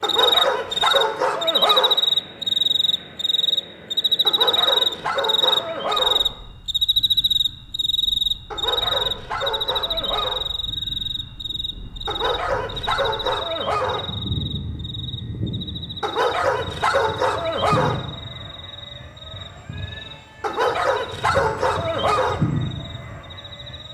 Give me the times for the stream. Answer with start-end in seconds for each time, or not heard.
not heard.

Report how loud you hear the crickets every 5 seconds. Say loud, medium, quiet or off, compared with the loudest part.
loud, loud, medium, quiet, quiet.